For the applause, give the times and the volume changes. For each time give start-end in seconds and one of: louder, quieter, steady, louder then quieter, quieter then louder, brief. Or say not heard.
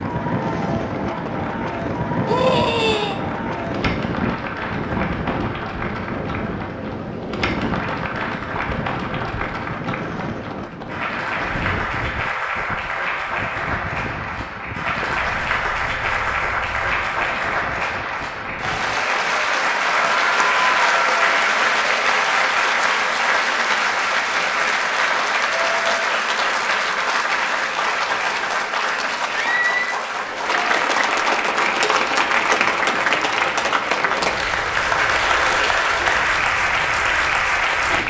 0.0-38.0 louder.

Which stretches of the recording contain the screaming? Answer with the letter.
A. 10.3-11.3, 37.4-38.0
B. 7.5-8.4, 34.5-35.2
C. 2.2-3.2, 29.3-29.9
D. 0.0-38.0
C.